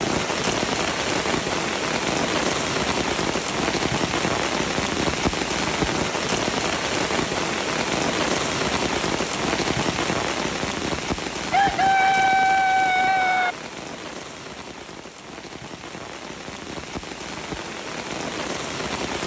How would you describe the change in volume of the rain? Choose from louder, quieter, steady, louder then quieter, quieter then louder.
quieter.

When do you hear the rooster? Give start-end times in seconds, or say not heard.
11.5-13.6.